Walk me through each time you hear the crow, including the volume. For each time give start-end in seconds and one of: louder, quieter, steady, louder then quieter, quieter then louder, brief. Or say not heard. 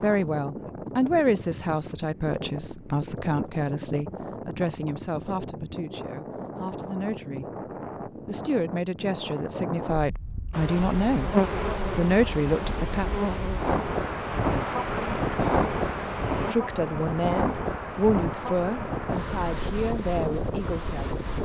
not heard.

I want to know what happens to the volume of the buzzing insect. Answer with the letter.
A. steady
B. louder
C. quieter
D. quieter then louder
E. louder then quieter
C.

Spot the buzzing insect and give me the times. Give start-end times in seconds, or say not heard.
10.5-16.6.